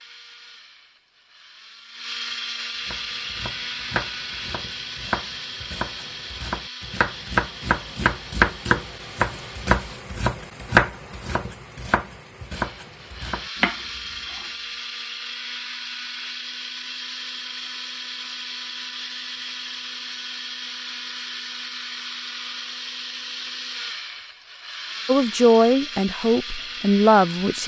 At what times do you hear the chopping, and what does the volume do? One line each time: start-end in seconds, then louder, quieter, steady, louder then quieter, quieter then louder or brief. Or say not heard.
2.9-14.5 louder then quieter.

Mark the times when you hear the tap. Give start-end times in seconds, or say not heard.
not heard.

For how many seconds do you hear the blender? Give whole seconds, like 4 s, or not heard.
25 s.